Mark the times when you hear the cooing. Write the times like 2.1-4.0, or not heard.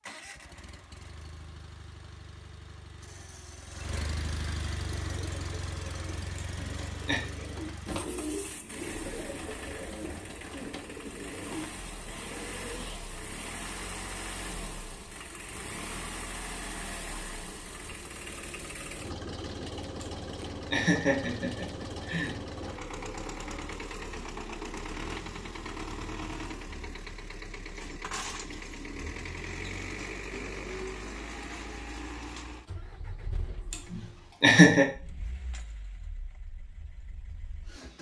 4.8-13.1.